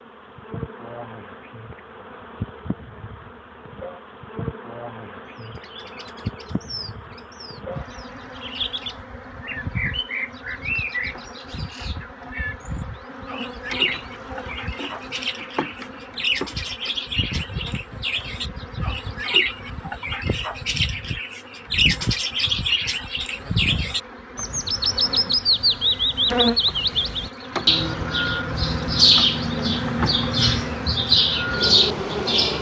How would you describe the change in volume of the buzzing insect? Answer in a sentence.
The loudness of the buzzing insect goes up.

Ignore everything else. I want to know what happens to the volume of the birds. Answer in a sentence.
The loudness of the birds goes up.